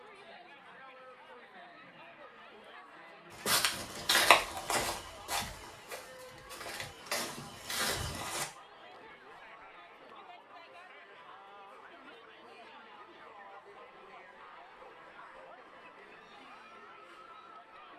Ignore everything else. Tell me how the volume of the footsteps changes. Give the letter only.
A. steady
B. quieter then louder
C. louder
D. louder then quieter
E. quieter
B.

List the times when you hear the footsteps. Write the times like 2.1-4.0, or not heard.
3.3-8.4.